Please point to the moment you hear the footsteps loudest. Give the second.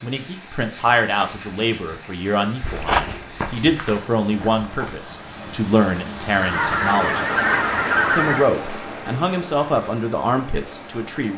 3 s.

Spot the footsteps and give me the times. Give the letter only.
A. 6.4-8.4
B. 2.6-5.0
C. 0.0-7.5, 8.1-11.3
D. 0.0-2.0
B.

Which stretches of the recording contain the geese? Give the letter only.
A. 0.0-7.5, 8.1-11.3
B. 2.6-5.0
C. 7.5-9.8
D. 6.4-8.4
D.